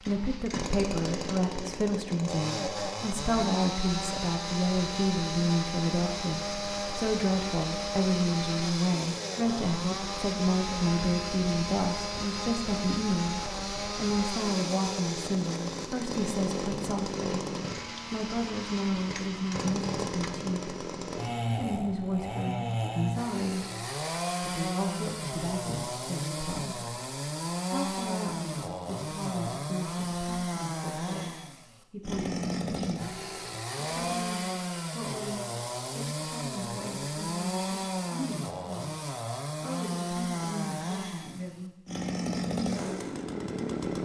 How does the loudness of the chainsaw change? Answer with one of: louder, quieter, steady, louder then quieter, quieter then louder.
steady.